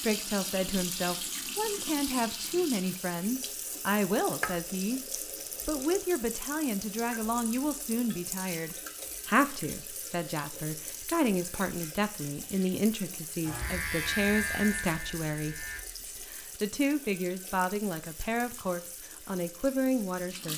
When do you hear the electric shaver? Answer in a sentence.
The electric shaver can be heard from 13.4 to 15.8 s.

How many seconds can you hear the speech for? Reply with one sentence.
You can hear the speech for 20 seconds altogether.